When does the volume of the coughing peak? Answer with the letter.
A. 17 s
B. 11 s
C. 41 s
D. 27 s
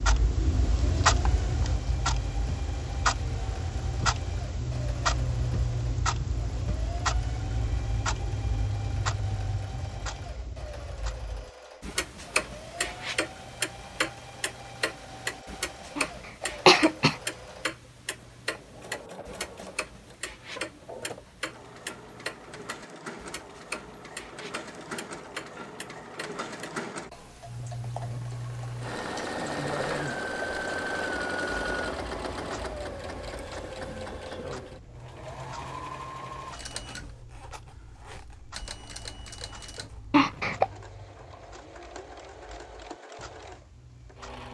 A.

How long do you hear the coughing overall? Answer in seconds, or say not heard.
2 s.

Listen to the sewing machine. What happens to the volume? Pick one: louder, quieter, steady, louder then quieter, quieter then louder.
louder then quieter.